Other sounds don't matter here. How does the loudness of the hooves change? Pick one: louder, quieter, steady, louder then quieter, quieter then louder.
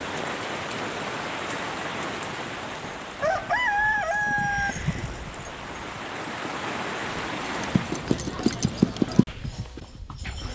louder then quieter.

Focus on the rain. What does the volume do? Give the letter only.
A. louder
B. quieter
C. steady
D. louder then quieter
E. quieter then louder
E.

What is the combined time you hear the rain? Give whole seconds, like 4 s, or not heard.
8 s.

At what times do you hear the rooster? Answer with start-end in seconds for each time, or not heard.
3.2-4.8.